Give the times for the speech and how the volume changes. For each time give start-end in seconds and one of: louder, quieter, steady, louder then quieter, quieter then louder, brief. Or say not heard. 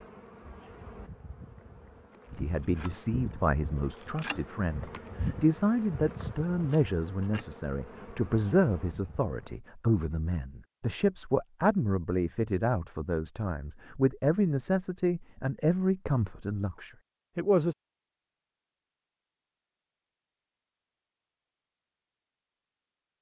2.3-17.8 steady.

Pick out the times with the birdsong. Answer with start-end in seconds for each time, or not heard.
not heard.